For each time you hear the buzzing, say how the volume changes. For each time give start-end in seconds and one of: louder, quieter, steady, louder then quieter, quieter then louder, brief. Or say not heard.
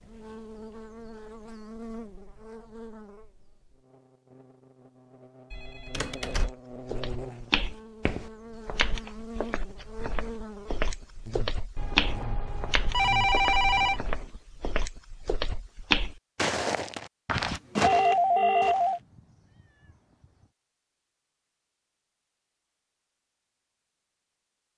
0.0-14.3 quieter then louder.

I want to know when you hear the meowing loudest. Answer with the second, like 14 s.
19 s.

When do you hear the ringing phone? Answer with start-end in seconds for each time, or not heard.
5.5-6.5, 11.8-14.1, 17.6-19.0.